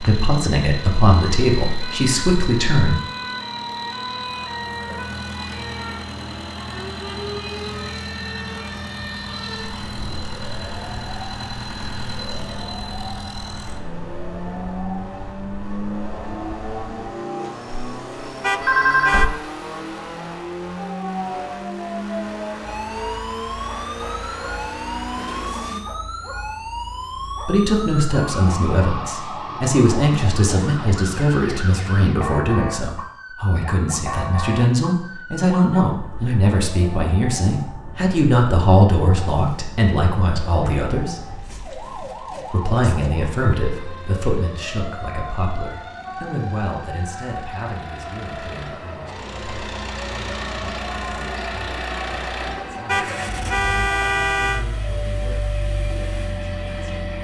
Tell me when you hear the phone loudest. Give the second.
19 s.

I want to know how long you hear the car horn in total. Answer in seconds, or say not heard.
3 s.